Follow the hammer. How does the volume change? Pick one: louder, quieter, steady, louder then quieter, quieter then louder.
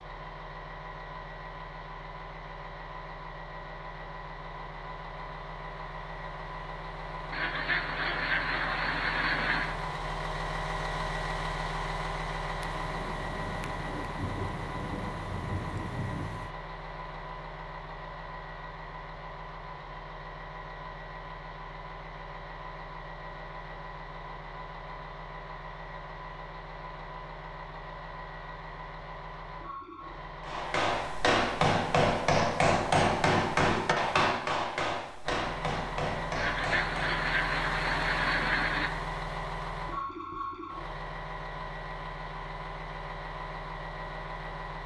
quieter.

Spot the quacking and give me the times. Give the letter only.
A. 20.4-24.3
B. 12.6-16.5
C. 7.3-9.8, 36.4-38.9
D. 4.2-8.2
C.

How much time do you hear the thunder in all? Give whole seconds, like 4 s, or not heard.
4 s.